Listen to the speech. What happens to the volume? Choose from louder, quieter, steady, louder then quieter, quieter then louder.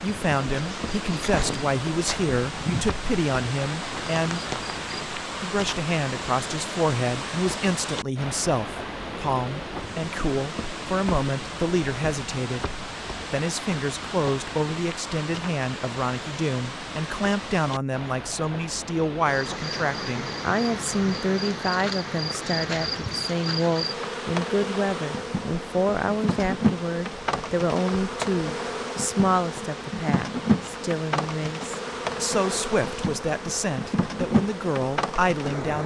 steady.